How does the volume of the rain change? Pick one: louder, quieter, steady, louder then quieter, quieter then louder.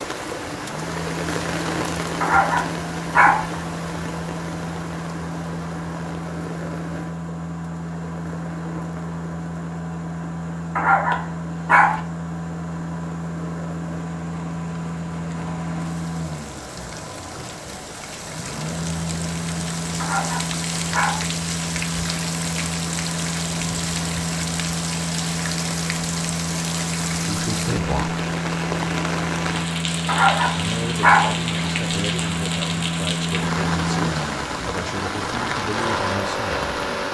quieter then louder.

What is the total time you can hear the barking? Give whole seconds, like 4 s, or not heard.
5 s.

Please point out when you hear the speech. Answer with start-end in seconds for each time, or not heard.
27.2-28.2, 30.5-36.7.